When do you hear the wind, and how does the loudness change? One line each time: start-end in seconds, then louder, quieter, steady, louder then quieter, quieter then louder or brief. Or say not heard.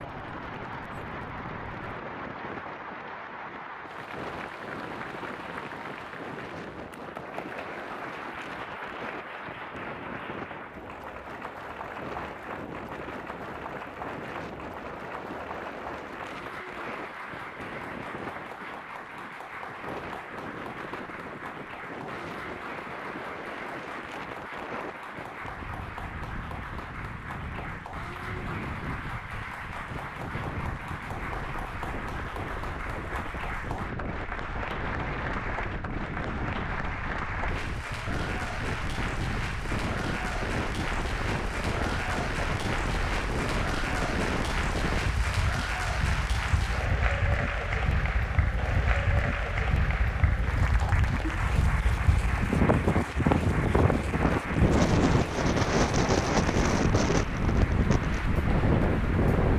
0.0-59.5 louder.